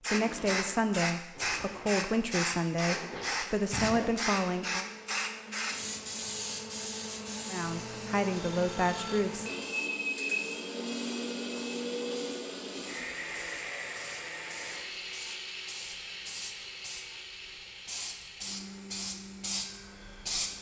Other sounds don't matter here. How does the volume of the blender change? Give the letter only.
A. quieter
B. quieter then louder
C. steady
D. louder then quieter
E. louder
D.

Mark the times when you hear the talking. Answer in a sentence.
You can hear the talking from 0.1 to 4.8 s and from 7.5 to 9.5 s.